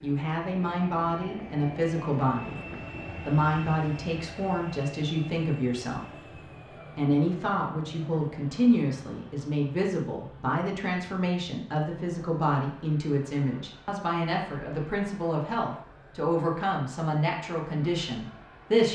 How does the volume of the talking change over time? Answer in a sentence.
The loudness of the talking stays about the same.